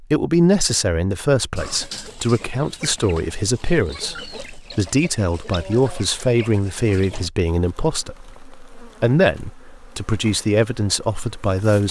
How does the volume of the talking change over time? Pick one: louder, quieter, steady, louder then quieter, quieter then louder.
steady.